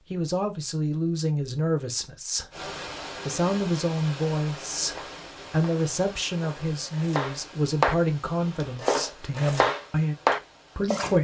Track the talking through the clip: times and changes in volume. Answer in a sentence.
You can hear the talking from 0.1 to 11.1 s, at a steady volume.